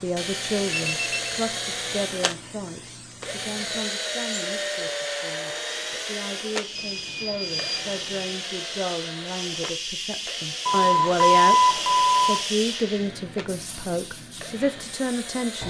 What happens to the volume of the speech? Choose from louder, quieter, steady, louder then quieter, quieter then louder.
quieter then louder.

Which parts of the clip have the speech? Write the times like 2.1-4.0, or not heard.
0.0-15.6.